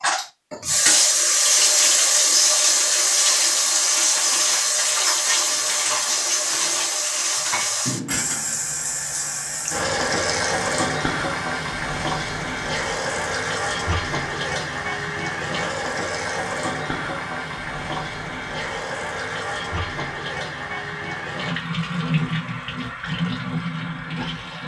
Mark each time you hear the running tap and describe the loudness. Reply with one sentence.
The running tap can be heard from 0.0 to 24.6 s, getting quieter.